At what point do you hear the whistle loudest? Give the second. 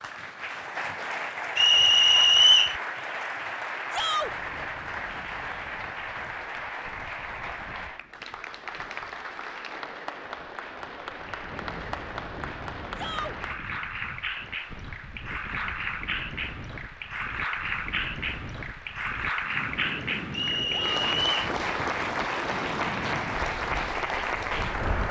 2 s.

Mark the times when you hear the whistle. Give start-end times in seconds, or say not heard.
1.6-2.8, 20.3-21.3.